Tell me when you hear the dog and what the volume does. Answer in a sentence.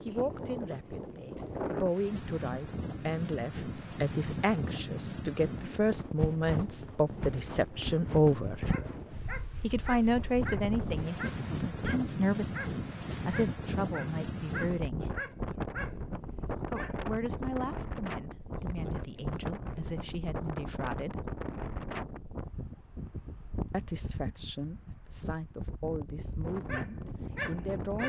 The dog can be heard from 8.7 to 16.9 s, at a steady volume; and briefly from 26.6 to 28.0 s.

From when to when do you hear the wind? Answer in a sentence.
You can hear the wind from 0.0 to 28.0 s.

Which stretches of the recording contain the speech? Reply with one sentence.
The speech can be heard from 0.1 to 8.7 s, from 9.6 to 15.1 s, from 16.6 to 21.2 s and from 23.7 to 28.0 s.